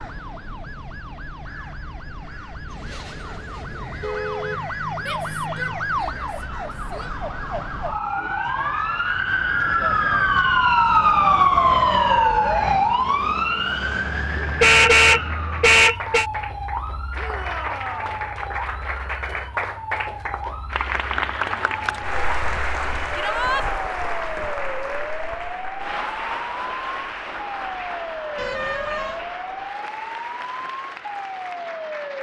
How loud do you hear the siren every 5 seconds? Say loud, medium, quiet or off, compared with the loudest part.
quiet, medium, loud, quiet, quiet, quiet, quiet.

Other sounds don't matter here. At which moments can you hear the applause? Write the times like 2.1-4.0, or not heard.
14.2-32.1.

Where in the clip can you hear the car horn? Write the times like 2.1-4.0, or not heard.
2.6-4.7, 14.6-16.2, 28.4-29.2.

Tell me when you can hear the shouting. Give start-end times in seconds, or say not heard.
5.0-7.1, 17.1-18.2, 23.1-23.6.